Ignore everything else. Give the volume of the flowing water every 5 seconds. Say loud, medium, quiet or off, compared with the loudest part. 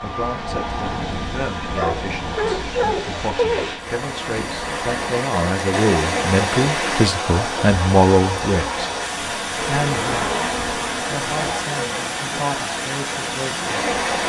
medium, loud, loud.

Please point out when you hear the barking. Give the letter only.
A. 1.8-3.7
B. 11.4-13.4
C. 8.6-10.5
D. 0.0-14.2
A.